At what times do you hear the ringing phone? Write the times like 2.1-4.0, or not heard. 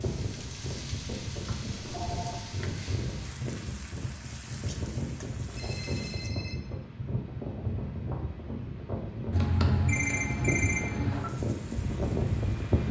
1.6-2.5, 5.5-6.7, 9.3-11.3.